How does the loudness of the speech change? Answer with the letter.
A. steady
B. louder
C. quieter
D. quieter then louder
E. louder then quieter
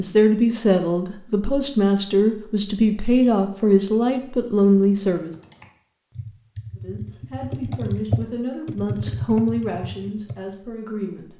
C.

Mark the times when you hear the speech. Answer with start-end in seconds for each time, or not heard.
0.0-5.3, 6.8-11.3.